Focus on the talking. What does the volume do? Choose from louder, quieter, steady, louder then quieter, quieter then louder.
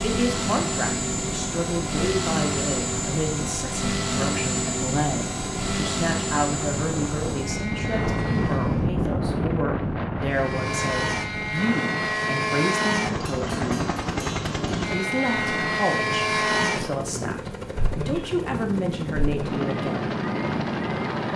steady.